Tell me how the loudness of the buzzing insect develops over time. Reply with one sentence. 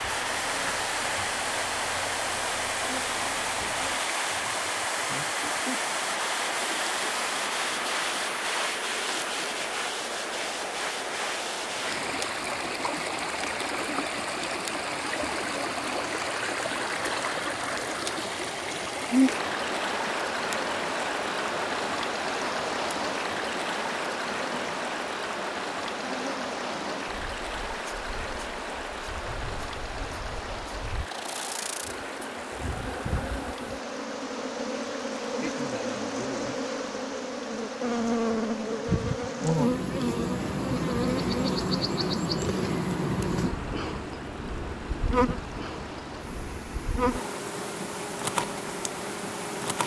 The loudness of the buzzing insect goes up.